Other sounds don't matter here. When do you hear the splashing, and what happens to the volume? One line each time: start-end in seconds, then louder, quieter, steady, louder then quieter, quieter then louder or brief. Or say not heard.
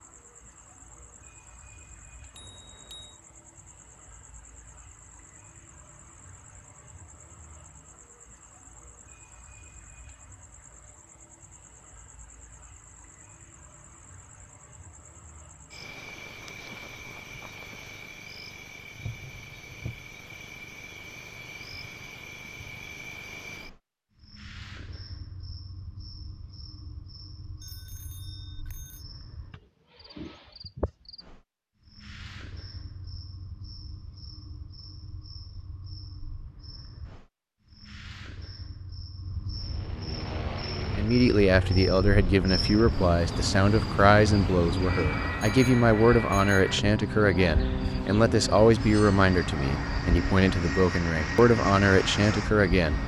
not heard.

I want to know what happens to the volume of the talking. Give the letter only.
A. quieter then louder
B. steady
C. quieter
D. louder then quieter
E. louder
B.